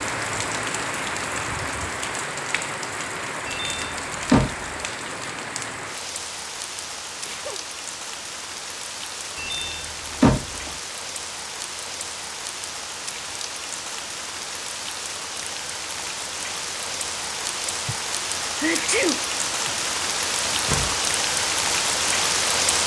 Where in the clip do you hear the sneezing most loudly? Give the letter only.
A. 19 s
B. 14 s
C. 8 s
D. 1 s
A.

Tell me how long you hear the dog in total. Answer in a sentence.
The dog can't be heard in this clip.